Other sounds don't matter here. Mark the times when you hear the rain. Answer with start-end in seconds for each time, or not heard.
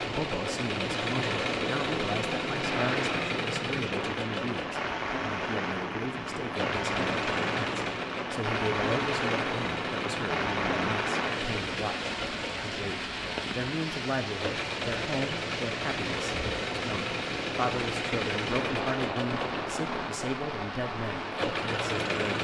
0.0-22.4.